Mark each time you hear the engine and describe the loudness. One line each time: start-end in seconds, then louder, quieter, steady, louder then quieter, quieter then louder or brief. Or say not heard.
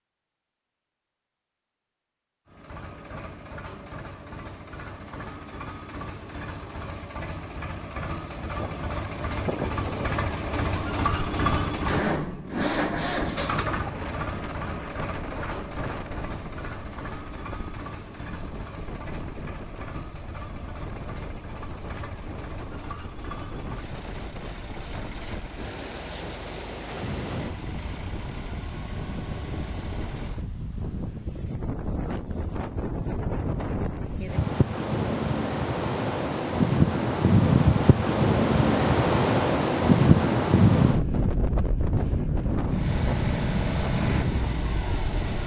2.5-30.5 louder then quieter
42.6-45.4 brief.